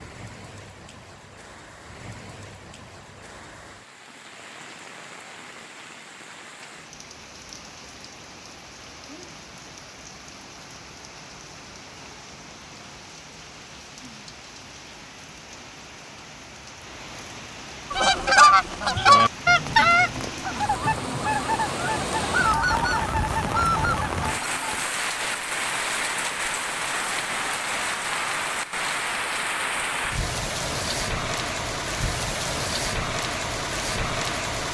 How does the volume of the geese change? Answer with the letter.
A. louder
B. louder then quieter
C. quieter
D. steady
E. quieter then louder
C.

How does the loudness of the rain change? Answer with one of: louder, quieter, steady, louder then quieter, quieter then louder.
louder.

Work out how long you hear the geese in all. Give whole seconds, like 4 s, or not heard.
7 s.